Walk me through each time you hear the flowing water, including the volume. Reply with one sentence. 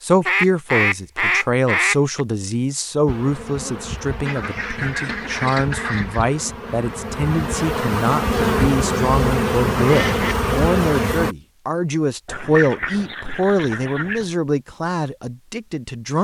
You can't hear the flowing water here.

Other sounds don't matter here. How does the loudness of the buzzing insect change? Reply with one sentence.
The volume of the buzzing insect goes up.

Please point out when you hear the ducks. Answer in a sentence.
The ducks can be heard from 0.2 to 2.2 s, from 4.2 to 6.2 s, from 8.3 to 10.3 s and from 12.2 to 14.3 s.